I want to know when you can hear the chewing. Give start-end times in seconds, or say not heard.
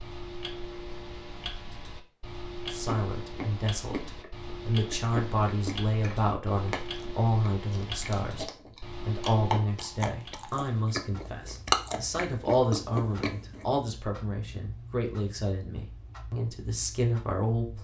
2.9-13.7.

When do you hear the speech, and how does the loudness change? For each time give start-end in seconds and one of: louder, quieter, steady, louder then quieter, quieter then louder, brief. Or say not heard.
2.7-17.8 steady.